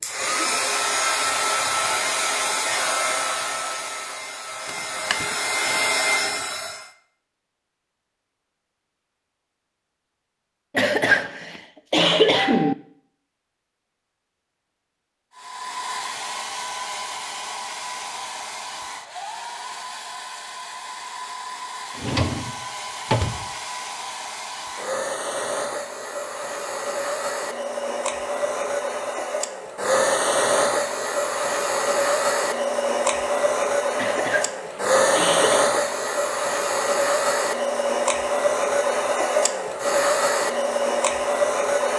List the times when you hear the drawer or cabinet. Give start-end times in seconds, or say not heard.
4.7-5.3, 21.9-23.4.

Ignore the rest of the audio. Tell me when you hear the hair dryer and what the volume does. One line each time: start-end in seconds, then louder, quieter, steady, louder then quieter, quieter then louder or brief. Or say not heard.
0.0-6.9 quieter then louder
15.3-41.9 louder.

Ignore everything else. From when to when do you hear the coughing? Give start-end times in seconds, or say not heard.
10.8-12.8, 34.0-35.6.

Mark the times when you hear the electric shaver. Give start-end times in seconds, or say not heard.
not heard.